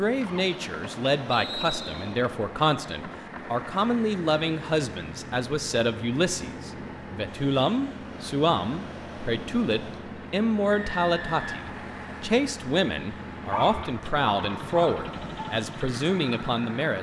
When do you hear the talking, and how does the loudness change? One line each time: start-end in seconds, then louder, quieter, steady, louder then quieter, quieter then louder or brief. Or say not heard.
0.0-16.9 steady.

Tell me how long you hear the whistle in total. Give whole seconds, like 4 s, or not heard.
2 s.